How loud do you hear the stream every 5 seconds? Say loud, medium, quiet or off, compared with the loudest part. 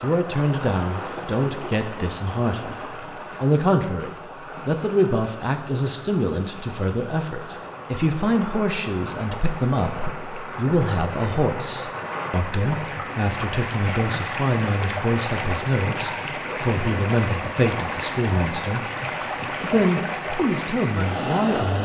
medium, medium, loud, loud, loud.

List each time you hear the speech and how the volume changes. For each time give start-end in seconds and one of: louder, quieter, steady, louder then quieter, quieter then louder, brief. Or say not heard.
0.0-18.8 steady
19.6-21.7 brief.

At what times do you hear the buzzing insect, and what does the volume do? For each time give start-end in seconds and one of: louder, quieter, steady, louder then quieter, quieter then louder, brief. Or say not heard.
not heard.